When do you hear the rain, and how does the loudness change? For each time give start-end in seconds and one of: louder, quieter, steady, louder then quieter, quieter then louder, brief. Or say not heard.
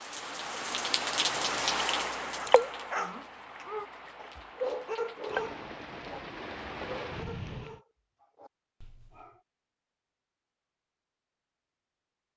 0.0-7.8 quieter then louder.